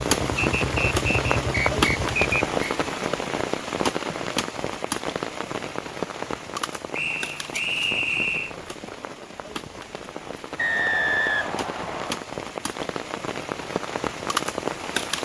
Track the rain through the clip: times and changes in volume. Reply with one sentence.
The rain can be heard from 0.0 to 15.2 s, getting quieter then louder.